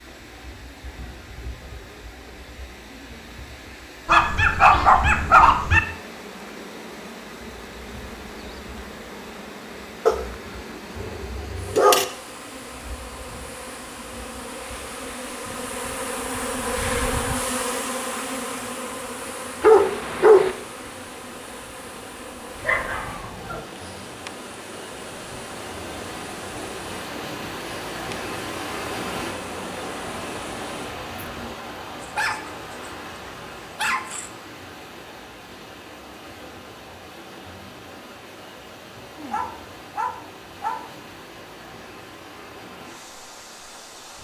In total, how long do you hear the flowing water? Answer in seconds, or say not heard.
44 s.